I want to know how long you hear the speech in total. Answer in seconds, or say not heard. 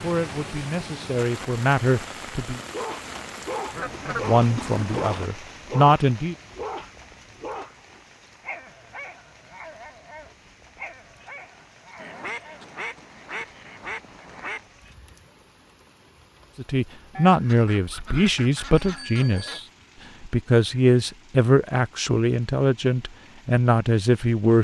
13 s.